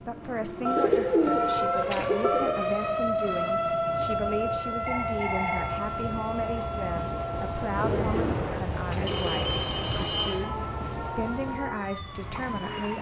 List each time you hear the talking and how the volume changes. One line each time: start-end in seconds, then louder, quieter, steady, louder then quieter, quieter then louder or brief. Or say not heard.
0.0-12.9 steady.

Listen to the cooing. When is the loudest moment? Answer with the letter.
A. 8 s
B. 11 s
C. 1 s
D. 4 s
C.